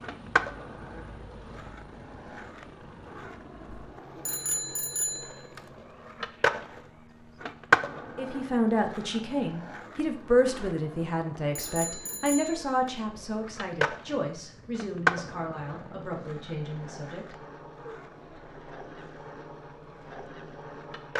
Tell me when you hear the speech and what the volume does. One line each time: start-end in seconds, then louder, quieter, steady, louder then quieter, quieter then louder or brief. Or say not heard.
8.2-17.9 quieter.